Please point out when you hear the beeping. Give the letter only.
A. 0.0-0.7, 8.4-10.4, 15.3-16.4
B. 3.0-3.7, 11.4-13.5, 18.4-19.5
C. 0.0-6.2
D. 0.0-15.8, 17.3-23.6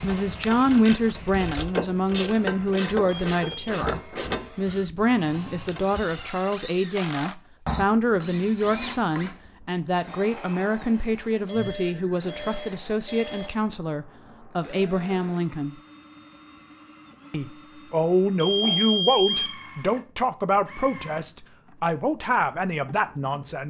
B.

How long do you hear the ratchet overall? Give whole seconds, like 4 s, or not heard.
6 s.